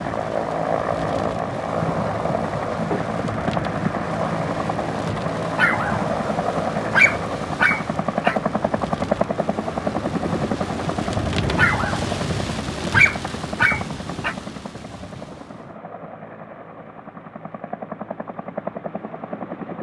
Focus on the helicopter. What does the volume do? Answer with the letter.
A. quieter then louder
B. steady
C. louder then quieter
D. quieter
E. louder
D.